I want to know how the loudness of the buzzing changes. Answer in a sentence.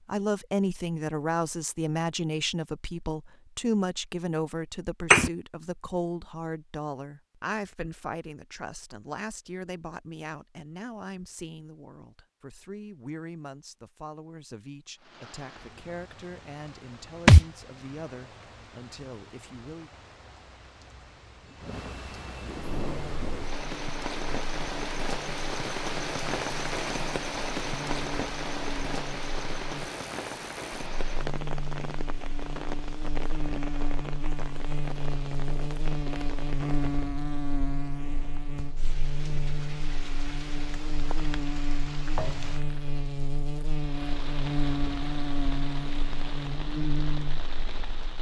The loudness of the buzzing goes up.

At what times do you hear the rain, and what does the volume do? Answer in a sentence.
You can hear the rain from 14.9 to 48.1 s, getting louder then quieter.